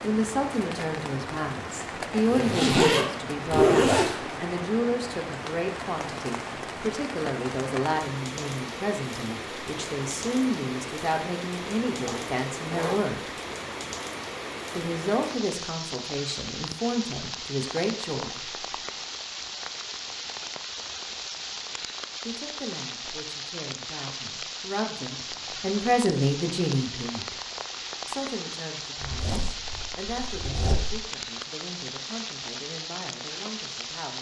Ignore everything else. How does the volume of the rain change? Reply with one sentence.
The volume of the rain stays about the same.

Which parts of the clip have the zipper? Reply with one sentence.
The zipper can be heard from 2.2 to 4.2 s, from 12.0 to 13.0 s and from 29.0 to 31.0 s.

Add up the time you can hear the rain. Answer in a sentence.
The rain can be heard for 34 seconds in total.